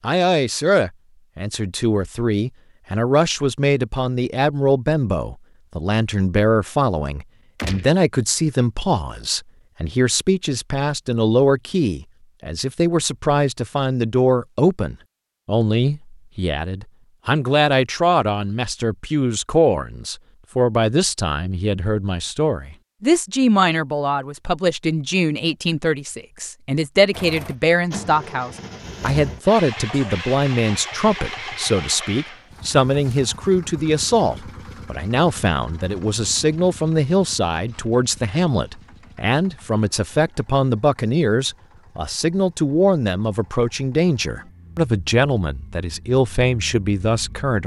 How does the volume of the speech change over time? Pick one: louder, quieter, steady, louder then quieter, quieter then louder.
steady.